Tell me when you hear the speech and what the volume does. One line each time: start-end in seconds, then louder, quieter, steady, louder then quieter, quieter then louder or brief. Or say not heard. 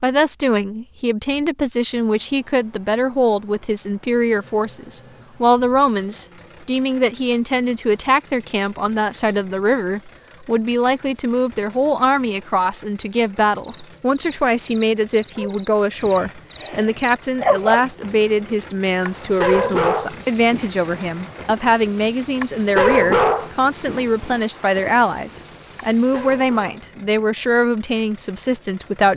0.0-29.1 steady.